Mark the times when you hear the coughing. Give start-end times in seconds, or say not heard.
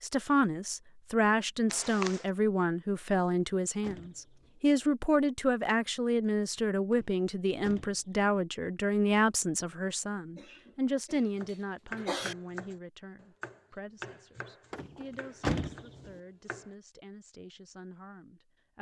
1.7-2.2, 10.3-12.3.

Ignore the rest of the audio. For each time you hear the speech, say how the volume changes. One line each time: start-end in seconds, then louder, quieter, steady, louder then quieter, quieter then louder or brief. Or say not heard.
0.0-18.7 quieter.